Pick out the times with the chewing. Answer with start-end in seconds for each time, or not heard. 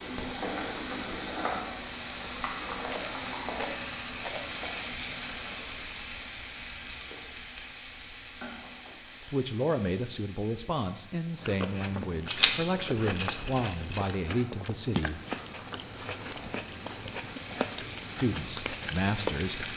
11.3-19.7.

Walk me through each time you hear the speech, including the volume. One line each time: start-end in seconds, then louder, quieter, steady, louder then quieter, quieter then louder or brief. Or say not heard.
9.2-15.3 steady
18.2-19.7 brief.